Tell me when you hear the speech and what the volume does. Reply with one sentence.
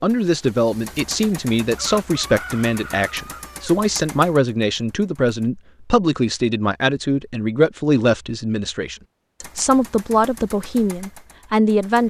The speech can be heard from 0.0 to 12.0 s, at a steady volume.